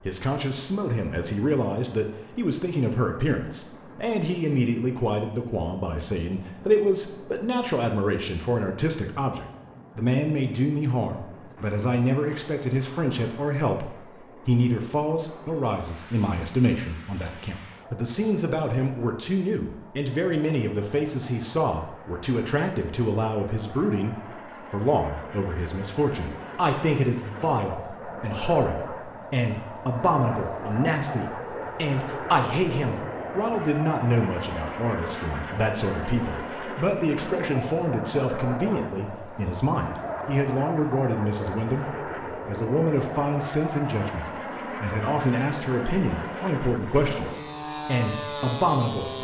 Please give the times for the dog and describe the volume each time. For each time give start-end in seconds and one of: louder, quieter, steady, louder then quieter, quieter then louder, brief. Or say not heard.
not heard.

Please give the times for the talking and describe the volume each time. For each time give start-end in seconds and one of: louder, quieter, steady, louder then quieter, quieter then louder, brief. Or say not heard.
0.1-49.1 steady.